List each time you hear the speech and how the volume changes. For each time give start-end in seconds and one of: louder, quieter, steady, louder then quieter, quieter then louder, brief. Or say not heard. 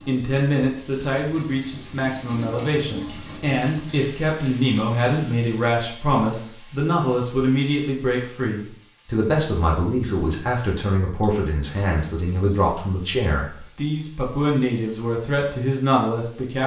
0.1-16.6 steady.